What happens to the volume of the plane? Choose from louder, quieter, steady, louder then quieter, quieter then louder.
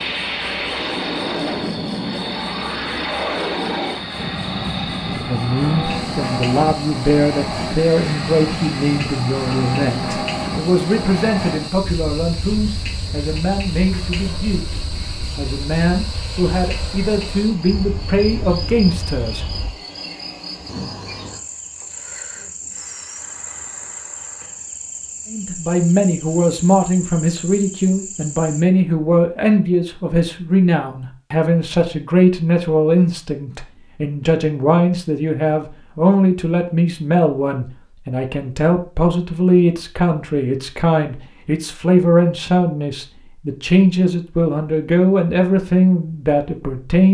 quieter.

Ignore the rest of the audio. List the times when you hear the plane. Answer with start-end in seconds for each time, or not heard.
0.0-19.8.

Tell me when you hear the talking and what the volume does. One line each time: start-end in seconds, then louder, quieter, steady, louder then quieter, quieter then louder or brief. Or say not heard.
5.2-19.4 steady
25.3-47.1 steady.